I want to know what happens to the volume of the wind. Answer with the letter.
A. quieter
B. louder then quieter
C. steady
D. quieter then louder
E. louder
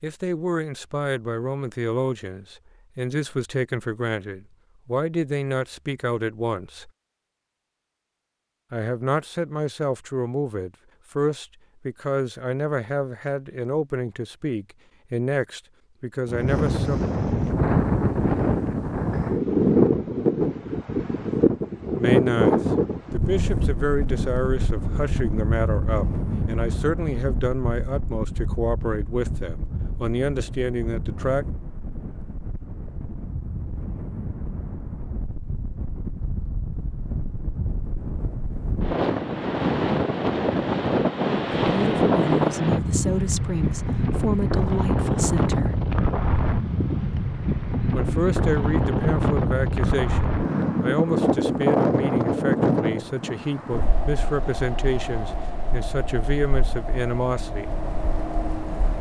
D.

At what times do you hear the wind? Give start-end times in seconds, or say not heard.
16.2-58.9.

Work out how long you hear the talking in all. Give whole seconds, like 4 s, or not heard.
39 s.